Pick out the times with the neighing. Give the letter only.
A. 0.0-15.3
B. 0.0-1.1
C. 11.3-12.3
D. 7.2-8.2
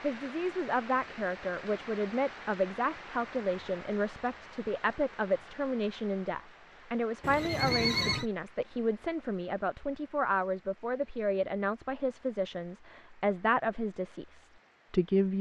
D.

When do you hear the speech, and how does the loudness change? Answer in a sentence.
The speech can be heard from 0.0 to 15.3 s, at a steady volume.